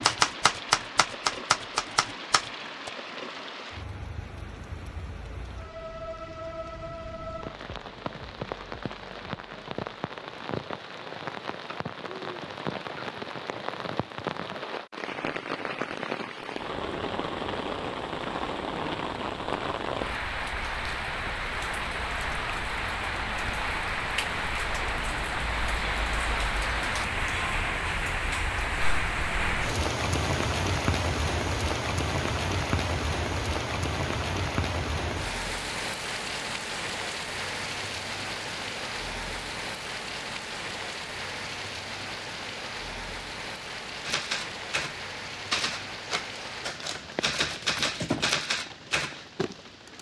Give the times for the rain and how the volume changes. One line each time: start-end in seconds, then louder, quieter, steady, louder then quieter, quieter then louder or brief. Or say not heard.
0.0-49.9 louder then quieter.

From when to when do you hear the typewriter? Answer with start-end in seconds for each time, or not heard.
0.0-2.9, 44.0-49.1.